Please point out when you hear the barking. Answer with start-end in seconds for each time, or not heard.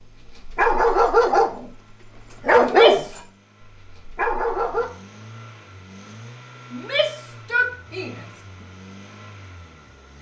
0.2-1.7, 2.4-3.2, 3.9-4.9.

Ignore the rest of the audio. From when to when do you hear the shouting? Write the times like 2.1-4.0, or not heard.
2.5-3.2, 6.7-8.2.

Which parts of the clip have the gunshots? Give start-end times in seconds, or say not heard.
not heard.